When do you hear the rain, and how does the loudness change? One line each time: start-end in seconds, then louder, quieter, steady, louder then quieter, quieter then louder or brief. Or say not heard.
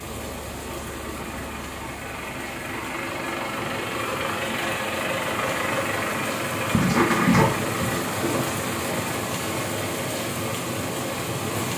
0.0-11.7 louder.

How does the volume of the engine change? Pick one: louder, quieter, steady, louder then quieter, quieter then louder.
louder then quieter.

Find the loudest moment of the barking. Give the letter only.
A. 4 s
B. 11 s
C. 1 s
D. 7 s
D.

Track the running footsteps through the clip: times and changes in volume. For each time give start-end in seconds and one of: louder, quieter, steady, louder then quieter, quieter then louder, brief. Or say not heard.
not heard.